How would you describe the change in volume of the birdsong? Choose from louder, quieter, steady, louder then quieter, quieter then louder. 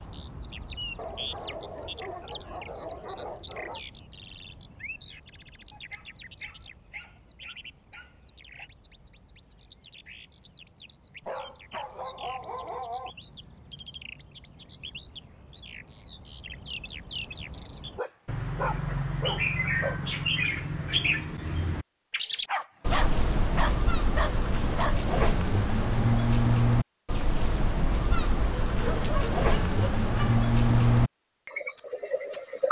quieter then louder.